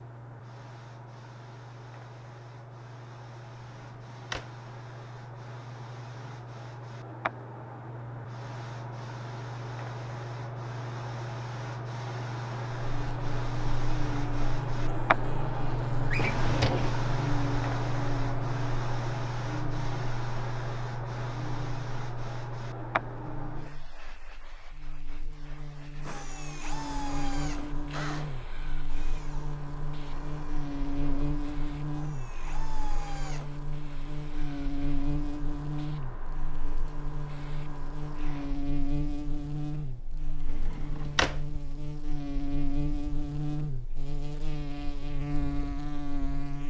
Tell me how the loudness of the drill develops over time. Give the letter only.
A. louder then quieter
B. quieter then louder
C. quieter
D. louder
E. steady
B.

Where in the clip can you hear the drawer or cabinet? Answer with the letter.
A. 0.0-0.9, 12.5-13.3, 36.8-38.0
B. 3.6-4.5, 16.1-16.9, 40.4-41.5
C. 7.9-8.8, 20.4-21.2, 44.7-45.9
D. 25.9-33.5
B.